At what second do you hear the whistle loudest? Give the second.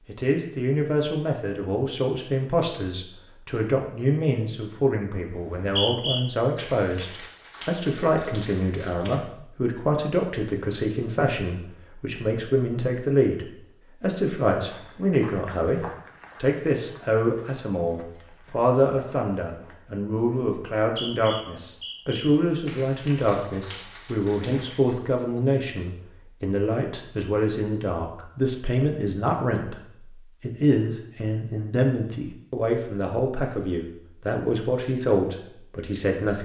6 s.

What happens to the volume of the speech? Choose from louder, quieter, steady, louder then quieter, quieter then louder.
steady.